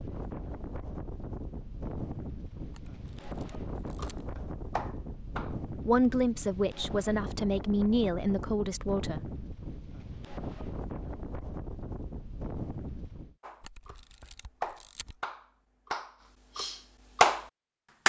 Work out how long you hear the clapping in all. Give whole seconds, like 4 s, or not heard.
6 s.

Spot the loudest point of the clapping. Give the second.
17 s.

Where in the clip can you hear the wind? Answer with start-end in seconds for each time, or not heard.
0.0-13.3.